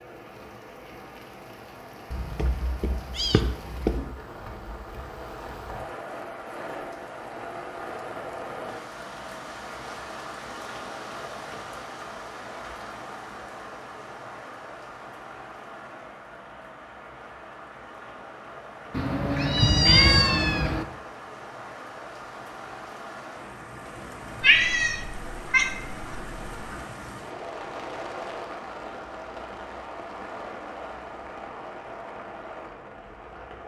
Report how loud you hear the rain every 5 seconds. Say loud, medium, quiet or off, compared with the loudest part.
medium, loud, loud, medium, loud, loud, loud.